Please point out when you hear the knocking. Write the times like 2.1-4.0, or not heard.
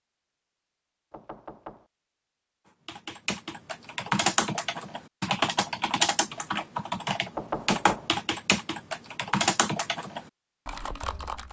1.1-1.9, 7.3-8.1.